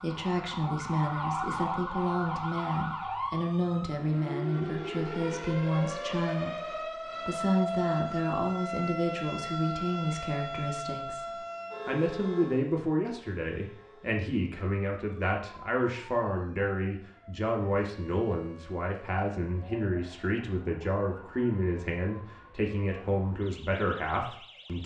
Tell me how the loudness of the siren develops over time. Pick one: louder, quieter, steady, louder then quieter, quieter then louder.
quieter.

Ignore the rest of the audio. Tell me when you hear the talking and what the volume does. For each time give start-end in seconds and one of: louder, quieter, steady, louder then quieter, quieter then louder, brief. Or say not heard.
0.0-24.8 steady.